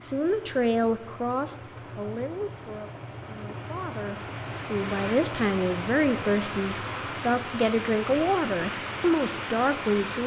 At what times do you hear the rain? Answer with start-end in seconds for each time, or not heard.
0.0-10.2.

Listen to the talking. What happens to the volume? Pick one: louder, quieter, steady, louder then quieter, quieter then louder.
quieter then louder.